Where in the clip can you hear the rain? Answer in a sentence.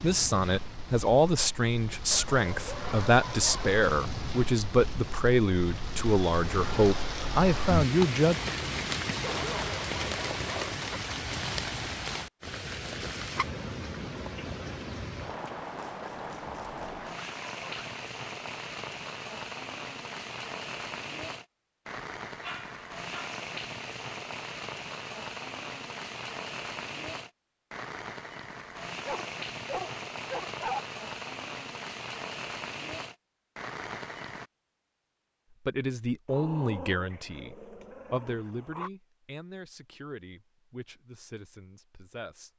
You can hear the rain from 0.0 to 34.5 s.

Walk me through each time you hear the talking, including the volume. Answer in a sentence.
The talking can be heard from 0.0 to 8.3 s, at a steady volume; and from 35.6 to 42.5 s, getting quieter.